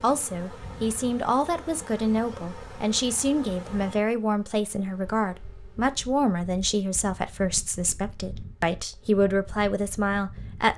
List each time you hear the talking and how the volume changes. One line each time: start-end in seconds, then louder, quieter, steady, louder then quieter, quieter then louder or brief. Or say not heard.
0.0-10.7 steady.